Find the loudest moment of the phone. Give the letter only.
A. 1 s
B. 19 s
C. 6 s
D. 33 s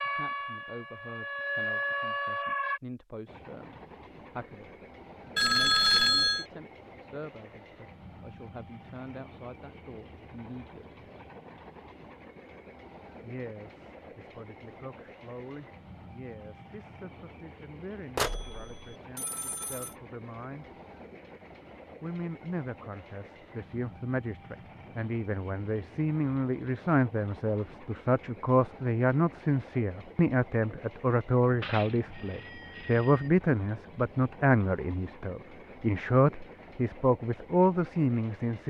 C.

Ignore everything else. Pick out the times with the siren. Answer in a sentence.
You can hear the siren from 0.0 to 2.8 s.